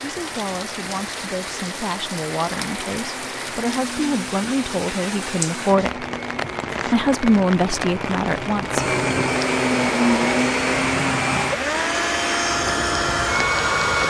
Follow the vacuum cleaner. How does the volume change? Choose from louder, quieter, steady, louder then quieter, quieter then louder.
louder.